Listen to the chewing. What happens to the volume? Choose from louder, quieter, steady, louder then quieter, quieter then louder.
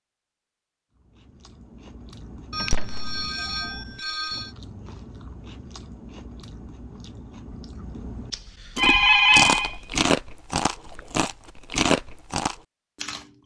louder.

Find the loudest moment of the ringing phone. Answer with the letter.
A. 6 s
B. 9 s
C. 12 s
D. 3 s
B.